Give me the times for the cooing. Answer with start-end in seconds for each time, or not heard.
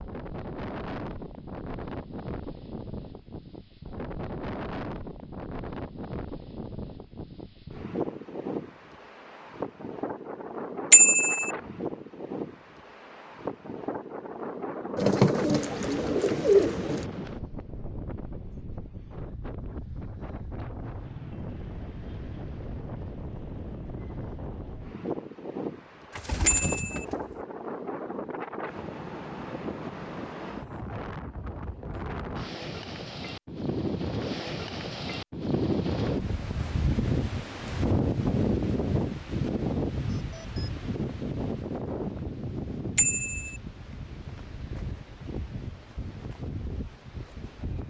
14.9-17.1, 26.1-27.4.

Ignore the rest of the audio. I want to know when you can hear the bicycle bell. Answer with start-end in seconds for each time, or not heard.
10.9-11.5, 26.4-27.1, 43.0-43.6.